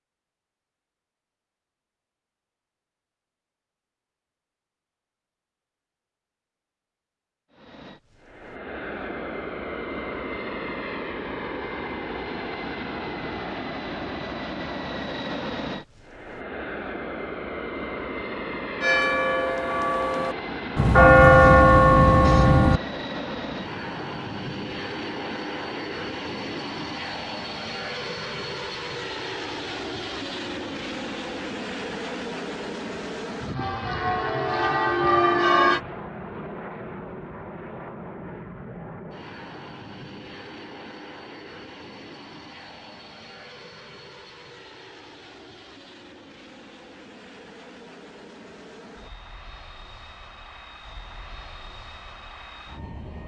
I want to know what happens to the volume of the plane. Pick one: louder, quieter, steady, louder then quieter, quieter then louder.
quieter.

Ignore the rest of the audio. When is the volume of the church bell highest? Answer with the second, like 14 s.
21 s.